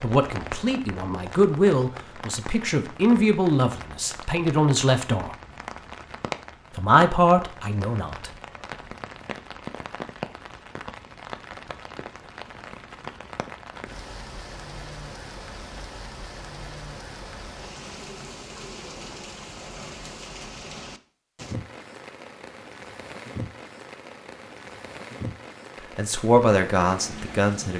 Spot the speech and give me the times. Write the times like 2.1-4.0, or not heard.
0.0-5.3, 6.8-8.3, 25.9-27.7.